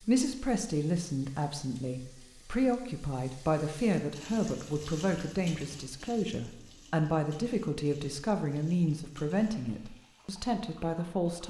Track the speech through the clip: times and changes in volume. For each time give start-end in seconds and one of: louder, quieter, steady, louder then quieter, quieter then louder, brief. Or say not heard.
0.1-11.4 steady.